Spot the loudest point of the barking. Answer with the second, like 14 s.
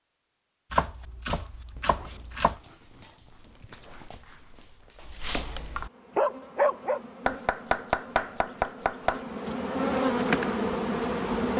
7 s.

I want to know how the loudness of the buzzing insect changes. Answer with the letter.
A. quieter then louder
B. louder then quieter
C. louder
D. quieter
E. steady
C.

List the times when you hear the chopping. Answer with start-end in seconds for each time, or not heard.
0.7-2.5, 7.2-9.2.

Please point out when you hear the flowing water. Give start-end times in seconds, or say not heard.
not heard.